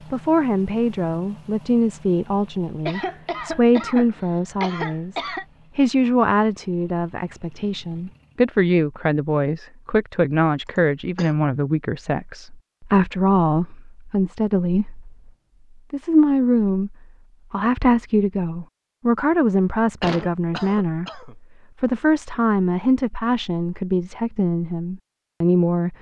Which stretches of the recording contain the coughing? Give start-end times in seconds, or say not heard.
2.9-5.5, 10.7-11.3, 20.0-21.4.